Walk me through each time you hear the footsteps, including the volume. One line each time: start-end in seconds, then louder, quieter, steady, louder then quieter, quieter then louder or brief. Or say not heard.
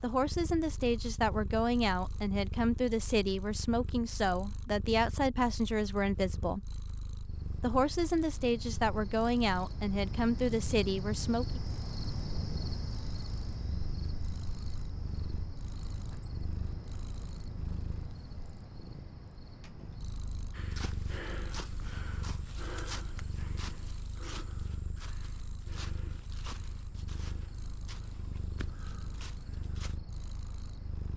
20.5-30.0 quieter.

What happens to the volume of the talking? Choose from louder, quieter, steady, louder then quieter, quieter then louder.
steady.